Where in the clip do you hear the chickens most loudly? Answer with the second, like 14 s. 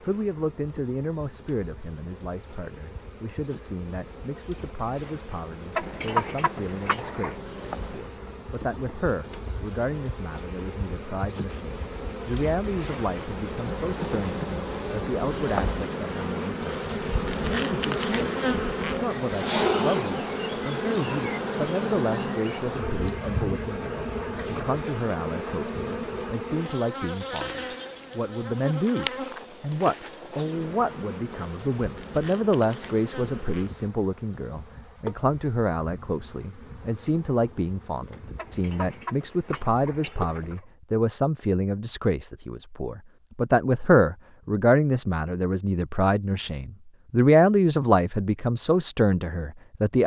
6 s.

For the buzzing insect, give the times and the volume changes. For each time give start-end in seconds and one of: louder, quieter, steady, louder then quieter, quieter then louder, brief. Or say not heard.
0.0-40.5 louder then quieter.